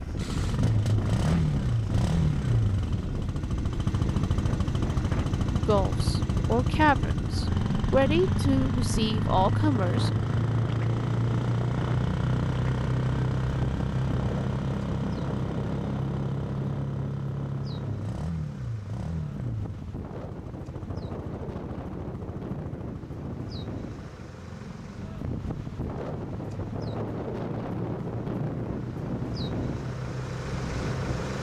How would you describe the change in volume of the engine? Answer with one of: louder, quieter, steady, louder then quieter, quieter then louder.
quieter.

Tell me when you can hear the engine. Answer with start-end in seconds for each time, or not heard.
0.0-31.3.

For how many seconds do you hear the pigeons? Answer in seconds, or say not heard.
not heard.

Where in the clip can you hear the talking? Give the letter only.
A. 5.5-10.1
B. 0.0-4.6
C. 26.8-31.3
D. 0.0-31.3
A.